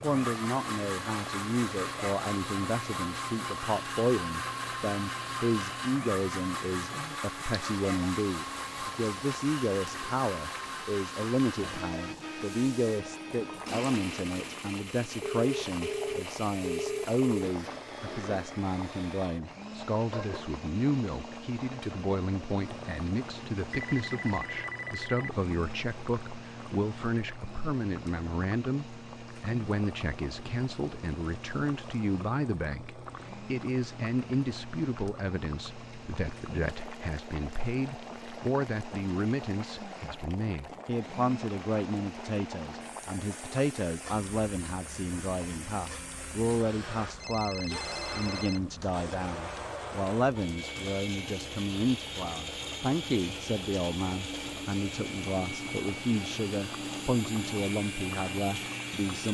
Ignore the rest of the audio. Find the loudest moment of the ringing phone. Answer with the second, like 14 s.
17 s.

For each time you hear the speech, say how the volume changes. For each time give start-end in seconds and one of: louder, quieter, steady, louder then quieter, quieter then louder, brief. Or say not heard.
0.0-59.2 steady.